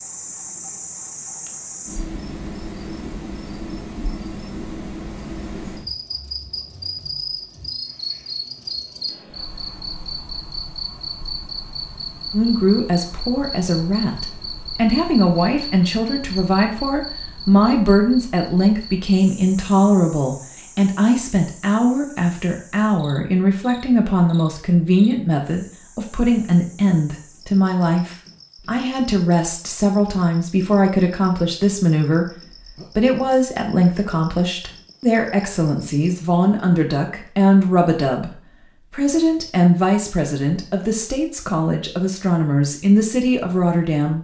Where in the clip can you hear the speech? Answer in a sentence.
You can hear the speech from 12.3 to 44.1 s.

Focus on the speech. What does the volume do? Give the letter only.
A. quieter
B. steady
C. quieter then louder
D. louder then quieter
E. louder
B.